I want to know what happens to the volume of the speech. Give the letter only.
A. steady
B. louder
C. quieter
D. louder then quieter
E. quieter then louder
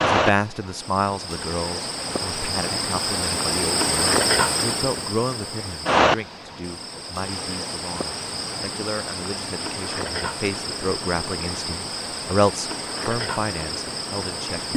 E.